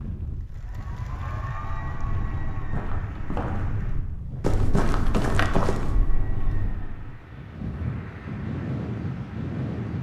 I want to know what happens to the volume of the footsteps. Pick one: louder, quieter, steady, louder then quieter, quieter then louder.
louder then quieter.